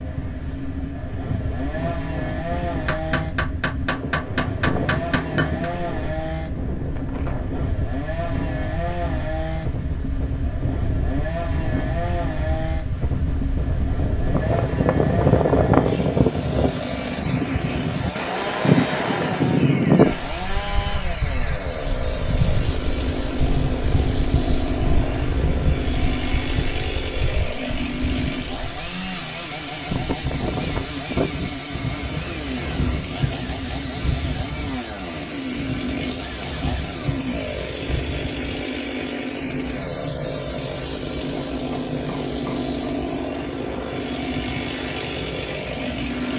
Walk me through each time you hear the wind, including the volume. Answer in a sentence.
The wind can be heard from 0.0 to 46.3 s, getting louder then quieter.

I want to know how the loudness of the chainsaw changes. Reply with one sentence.
The loudness of the chainsaw stays about the same.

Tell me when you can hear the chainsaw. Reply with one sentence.
The chainsaw can be heard from 0.0 to 46.3 s.